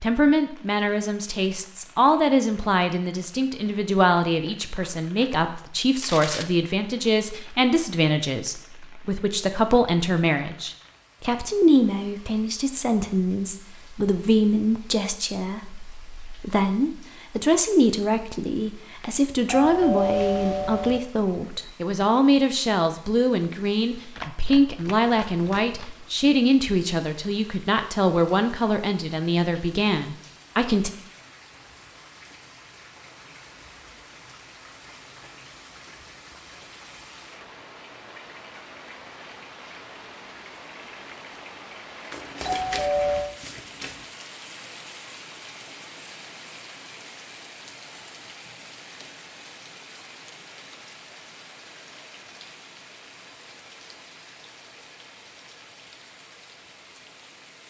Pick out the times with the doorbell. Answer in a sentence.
The doorbell can be heard from 19.4 to 21.0 s and from 42.4 to 43.4 s.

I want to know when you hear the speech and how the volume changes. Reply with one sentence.
You can hear the speech from 0.0 to 30.9 s, at a steady volume.